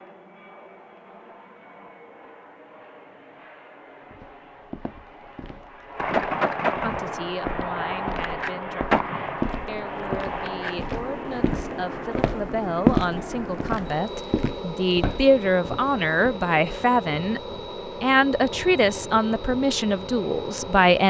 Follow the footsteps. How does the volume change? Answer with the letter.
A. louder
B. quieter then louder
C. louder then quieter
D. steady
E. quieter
C.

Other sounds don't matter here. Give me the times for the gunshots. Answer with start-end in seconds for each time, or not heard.
6.0-10.9.